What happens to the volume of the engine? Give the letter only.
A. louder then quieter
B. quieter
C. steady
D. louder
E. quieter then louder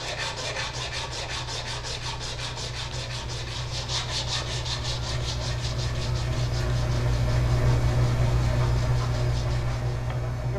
D.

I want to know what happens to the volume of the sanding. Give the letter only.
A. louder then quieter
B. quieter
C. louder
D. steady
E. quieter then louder
B.